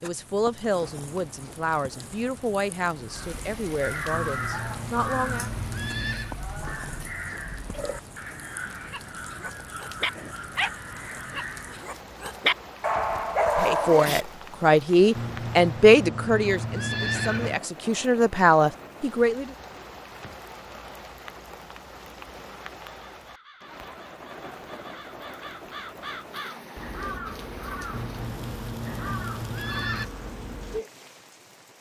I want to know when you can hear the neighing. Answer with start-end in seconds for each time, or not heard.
4.1-6.3, 15.2-17.6, 27.9-30.1.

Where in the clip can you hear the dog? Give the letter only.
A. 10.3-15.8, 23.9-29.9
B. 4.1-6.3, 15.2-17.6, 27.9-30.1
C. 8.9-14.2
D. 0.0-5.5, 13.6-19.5
C.